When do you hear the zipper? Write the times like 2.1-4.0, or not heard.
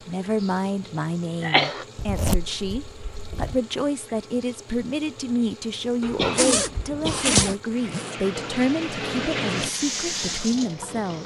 1.9-3.6, 6.3-8.2.